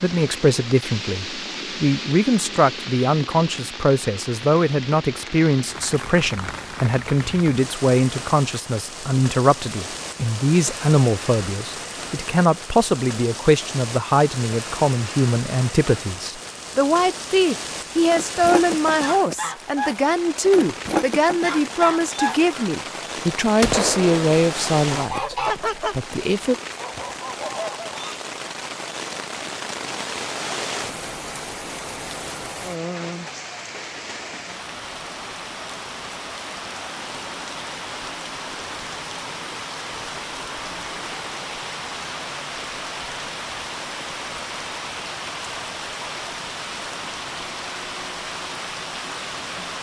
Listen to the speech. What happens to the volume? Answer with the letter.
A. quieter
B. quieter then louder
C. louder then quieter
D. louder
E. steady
E.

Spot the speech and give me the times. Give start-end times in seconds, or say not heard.
0.0-26.6.